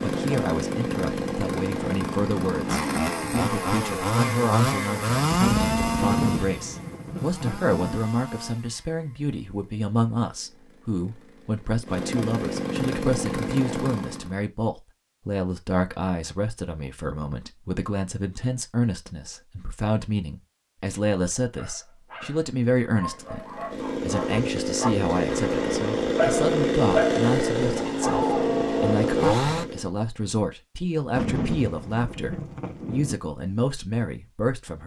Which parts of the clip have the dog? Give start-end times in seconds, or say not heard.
21.6-28.9.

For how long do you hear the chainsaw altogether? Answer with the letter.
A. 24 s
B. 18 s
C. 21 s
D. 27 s
C.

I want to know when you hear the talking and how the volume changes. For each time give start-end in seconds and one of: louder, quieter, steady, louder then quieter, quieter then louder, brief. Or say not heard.
0.0-34.8 steady.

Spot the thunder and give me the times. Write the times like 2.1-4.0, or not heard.
6.0-8.0, 31.1-33.1.